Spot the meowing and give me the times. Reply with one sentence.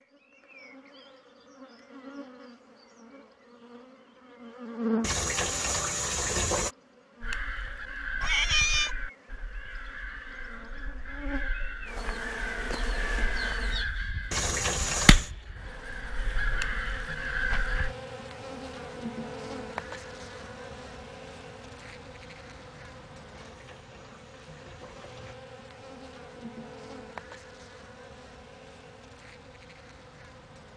You can hear the meowing from 8.2 to 8.9 s.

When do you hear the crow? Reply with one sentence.
The crow can be heard from 7.2 to 17.9 s.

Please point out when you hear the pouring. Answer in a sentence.
The pouring can be heard from 5.0 to 6.8 s, from 14.3 to 15.3 s and from 23.3 to 25.4 s.